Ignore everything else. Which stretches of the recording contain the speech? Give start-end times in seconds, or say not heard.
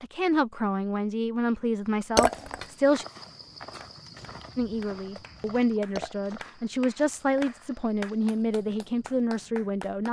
0.0-3.0, 4.5-10.0.